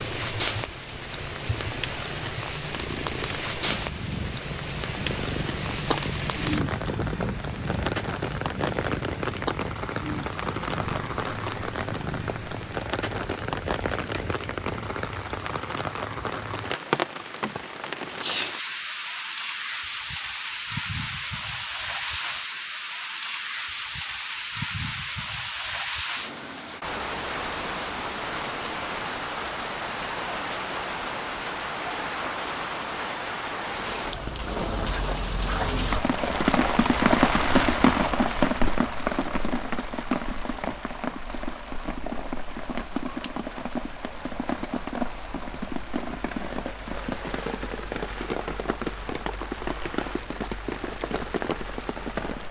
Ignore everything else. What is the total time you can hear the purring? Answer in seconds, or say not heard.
15 s.